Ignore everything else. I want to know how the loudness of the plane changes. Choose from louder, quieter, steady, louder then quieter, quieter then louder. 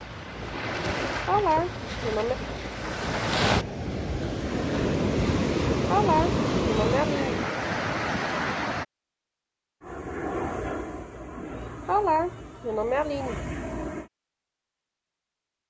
quieter then louder.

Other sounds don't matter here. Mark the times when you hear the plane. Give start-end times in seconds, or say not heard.
9.8-14.1.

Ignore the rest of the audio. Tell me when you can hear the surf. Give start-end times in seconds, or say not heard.
0.0-8.8.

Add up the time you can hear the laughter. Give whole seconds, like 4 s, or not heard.
5 s.